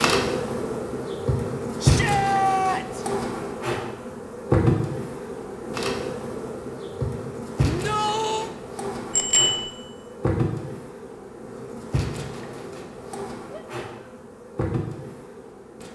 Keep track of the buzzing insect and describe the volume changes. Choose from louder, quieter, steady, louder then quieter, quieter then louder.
quieter.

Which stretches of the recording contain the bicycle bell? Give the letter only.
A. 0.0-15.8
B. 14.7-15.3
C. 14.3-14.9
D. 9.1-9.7
D.